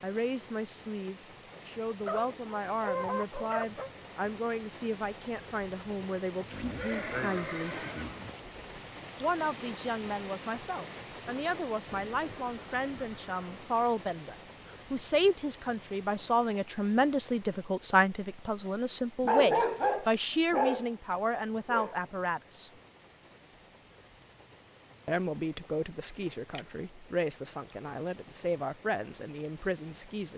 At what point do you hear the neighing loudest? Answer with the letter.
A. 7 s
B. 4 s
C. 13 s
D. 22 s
A.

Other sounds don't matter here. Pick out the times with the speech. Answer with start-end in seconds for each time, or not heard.
0.0-7.8, 9.2-22.7, 25.1-30.3.